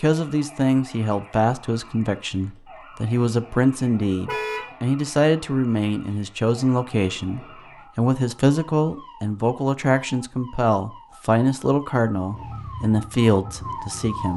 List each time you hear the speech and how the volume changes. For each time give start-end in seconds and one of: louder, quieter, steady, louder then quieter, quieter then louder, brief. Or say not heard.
0.0-14.3 steady.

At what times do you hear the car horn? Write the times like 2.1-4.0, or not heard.
4.2-4.8.